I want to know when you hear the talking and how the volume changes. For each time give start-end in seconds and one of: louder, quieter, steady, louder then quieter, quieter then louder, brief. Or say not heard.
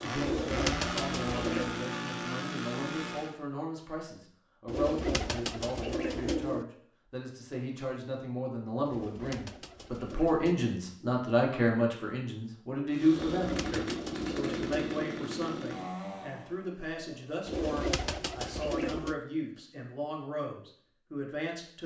0.0-21.8 louder then quieter.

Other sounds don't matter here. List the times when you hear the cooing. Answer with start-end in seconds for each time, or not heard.
0.1-1.8, 4.7-6.7, 8.8-10.7, 13.1-14.9, 17.4-19.2.